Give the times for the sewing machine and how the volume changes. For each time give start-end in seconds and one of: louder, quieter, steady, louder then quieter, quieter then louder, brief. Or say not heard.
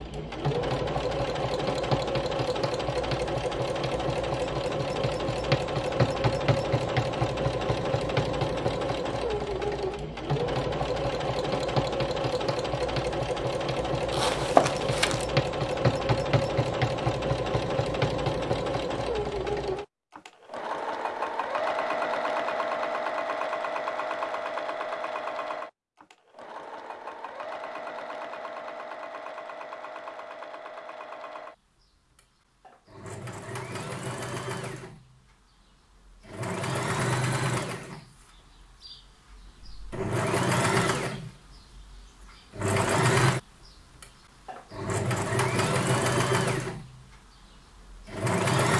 0.0-48.7 quieter then louder.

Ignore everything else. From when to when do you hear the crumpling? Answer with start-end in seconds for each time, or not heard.
14.1-15.2.